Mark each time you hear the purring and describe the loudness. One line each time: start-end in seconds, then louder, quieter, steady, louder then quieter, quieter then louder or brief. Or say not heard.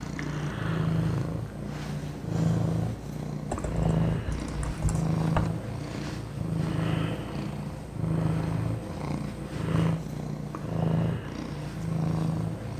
0.0-12.7 steady.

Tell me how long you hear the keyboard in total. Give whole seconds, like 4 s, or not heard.
2 s.